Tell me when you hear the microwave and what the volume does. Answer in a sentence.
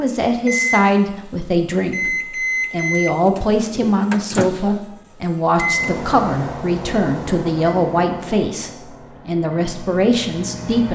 You can hear the microwave from 0.3 to 10.8 s, getting quieter.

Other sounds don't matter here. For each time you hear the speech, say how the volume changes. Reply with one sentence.
You can hear the speech from 0.0 to 10.8 s, at a steady volume.